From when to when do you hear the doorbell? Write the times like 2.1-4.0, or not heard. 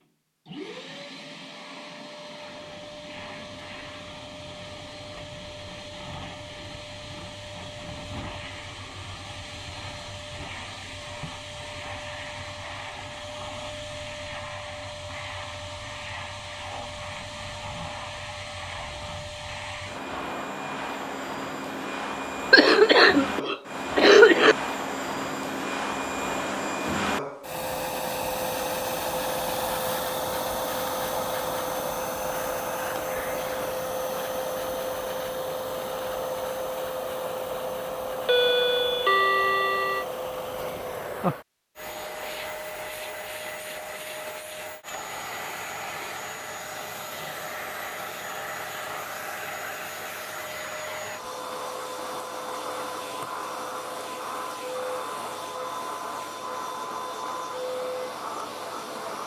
38.2-40.0.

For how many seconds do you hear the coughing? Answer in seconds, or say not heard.
2 s.